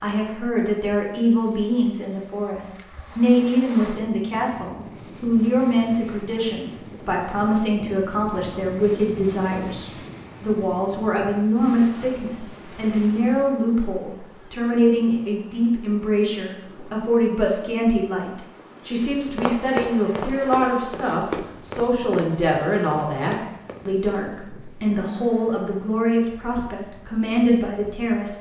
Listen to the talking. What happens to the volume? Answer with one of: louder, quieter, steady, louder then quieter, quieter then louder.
steady.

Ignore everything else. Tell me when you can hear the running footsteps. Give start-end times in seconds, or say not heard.
19.2-24.2.